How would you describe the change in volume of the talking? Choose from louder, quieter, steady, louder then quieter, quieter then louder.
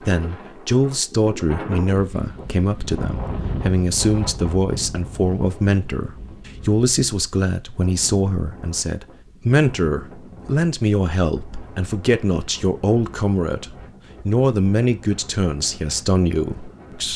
steady.